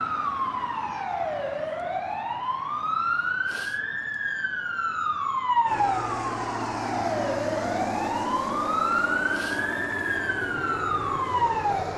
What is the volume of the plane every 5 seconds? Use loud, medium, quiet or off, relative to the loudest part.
off, loud, loud.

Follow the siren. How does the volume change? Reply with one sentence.
The loudness of the siren stays about the same.